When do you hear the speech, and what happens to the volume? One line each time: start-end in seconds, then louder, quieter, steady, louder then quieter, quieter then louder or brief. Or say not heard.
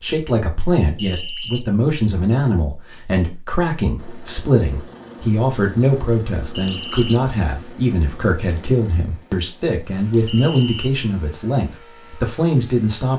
0.0-13.1 steady.